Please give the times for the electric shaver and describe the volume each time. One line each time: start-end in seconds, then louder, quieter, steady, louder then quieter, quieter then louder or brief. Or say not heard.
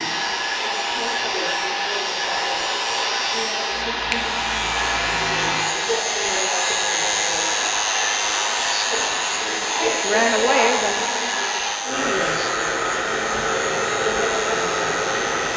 0.0-15.5 louder then quieter.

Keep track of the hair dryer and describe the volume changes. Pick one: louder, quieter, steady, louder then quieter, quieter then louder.
steady.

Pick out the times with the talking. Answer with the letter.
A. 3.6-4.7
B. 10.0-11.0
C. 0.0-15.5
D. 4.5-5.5
B.